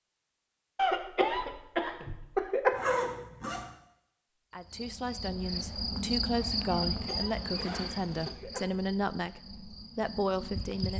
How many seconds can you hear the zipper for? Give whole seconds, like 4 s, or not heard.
2 s.